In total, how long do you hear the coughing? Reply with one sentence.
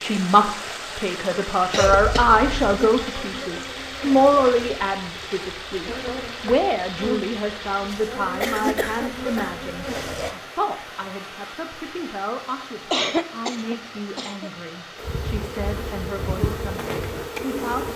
The coughing can be heard for 4 seconds in total.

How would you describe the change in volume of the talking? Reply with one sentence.
The loudness of the talking goes down.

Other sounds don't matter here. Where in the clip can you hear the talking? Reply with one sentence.
The talking can be heard from 0.0 to 17.9 s.